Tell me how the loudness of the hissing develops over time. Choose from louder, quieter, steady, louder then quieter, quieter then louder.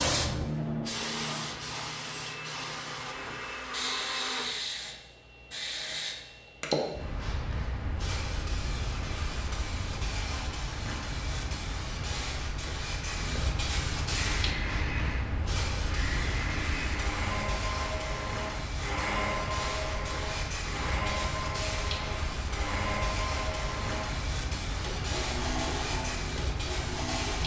steady.